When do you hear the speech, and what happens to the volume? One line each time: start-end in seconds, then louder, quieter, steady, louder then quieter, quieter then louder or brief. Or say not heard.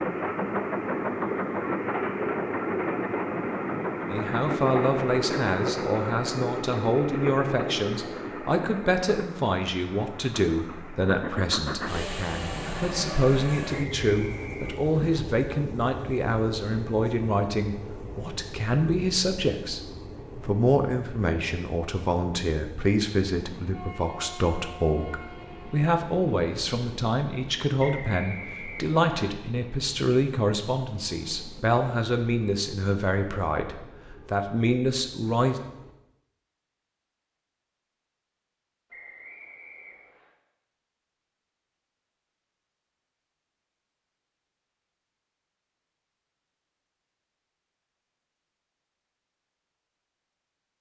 4.0-19.8 steady
20.4-35.5 steady.